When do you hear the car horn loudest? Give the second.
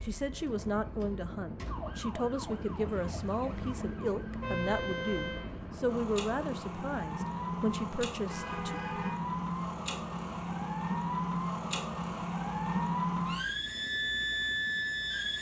5 s.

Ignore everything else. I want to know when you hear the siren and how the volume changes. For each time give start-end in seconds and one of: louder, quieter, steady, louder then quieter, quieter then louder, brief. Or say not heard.
0.0-15.3 louder.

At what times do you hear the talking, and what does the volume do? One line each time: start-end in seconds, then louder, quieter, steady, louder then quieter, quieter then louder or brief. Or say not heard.
0.0-8.8 steady.